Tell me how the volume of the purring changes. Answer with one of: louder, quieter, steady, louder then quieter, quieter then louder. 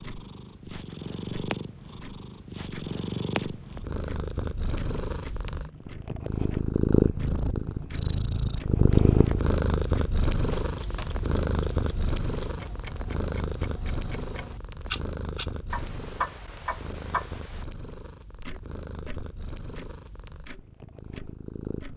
louder then quieter.